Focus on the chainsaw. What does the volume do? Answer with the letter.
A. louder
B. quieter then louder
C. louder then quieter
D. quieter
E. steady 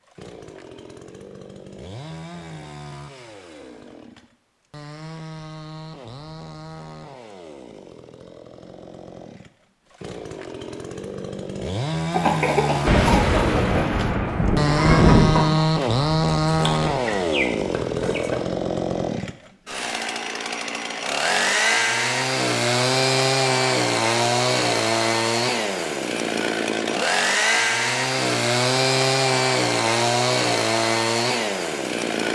A.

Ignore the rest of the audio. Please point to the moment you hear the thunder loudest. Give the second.
15 s.